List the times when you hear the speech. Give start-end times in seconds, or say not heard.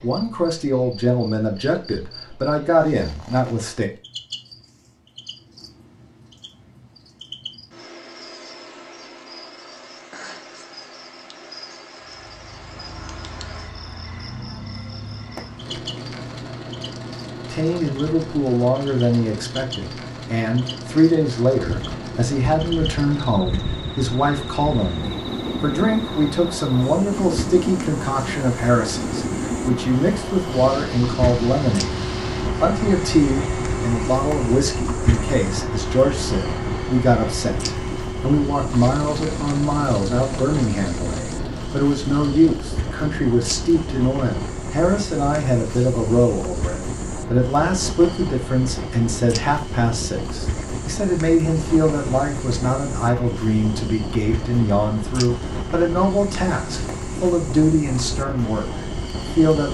0.0-3.9, 17.5-59.7.